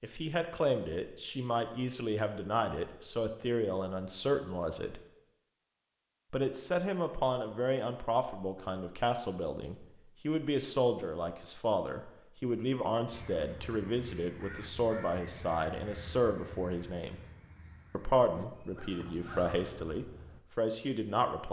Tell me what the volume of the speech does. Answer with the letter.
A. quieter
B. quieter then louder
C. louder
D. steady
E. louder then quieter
D.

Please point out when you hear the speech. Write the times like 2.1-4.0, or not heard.
0.0-5.0, 6.3-17.2, 17.9-21.4.